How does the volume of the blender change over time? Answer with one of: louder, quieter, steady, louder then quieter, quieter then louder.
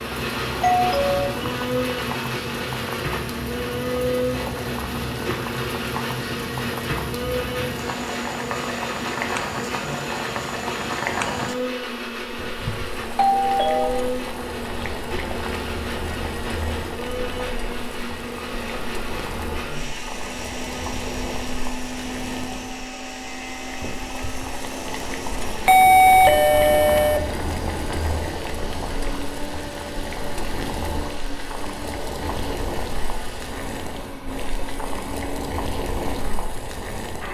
quieter.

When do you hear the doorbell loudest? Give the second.
26 s.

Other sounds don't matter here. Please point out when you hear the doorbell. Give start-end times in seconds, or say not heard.
0.6-1.4, 12.6-13.9, 25.6-27.2.